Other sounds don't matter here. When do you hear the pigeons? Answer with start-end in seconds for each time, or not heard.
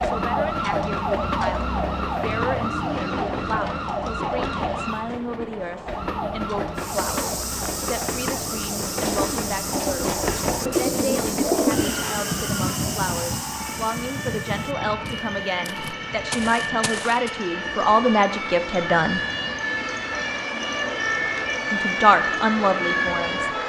9.0-11.9.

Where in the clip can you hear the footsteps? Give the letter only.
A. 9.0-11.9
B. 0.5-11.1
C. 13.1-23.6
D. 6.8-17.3
D.